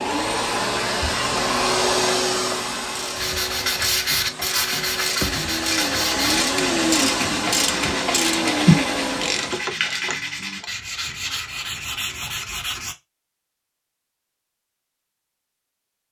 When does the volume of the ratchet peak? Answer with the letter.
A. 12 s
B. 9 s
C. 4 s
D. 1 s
B.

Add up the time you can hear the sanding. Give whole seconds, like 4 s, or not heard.
10 s.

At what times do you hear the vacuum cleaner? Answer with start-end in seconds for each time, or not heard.
0.0-9.7.